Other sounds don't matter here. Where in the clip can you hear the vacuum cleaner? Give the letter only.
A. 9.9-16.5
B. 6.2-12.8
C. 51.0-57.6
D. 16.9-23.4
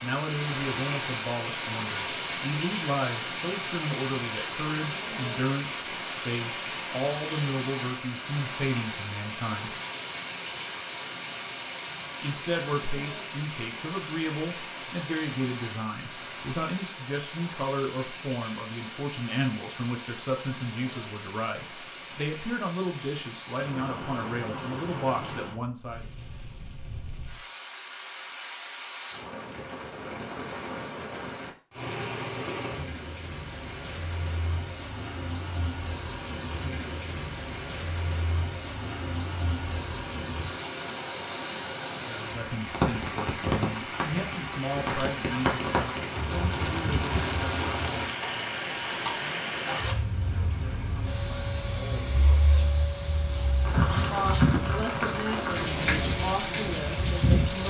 C.